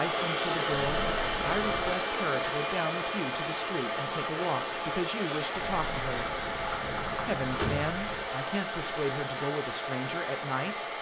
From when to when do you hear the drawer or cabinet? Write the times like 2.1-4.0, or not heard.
6.8-7.9.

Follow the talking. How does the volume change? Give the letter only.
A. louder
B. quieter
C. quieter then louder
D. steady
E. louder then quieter
D.